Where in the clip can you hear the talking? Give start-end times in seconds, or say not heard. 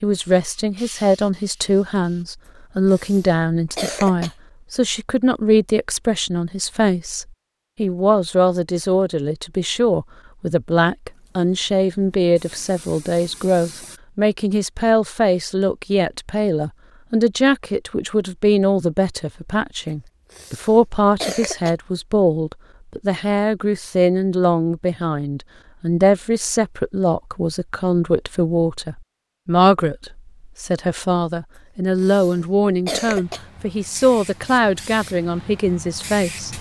0.0-36.5.